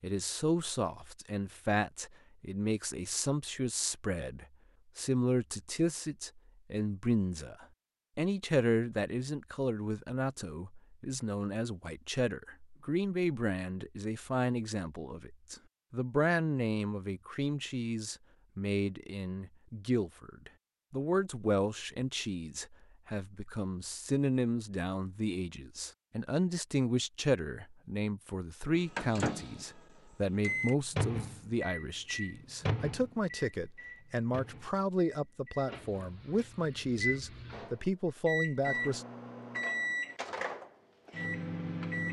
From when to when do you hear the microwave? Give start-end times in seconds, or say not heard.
28.7-42.0.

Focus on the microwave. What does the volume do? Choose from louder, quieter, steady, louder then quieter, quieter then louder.
quieter then louder.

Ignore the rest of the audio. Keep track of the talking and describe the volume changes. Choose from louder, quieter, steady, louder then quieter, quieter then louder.
steady.